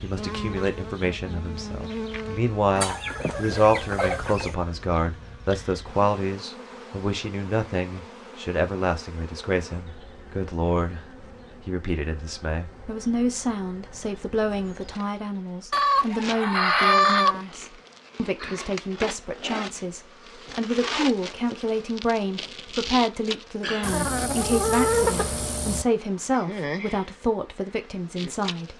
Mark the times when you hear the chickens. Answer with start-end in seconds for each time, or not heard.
2.8-4.5, 15.7-17.4, 23.8-25.9.